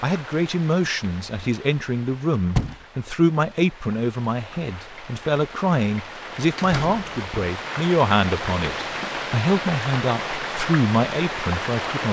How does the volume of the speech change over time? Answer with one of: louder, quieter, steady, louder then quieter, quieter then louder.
steady.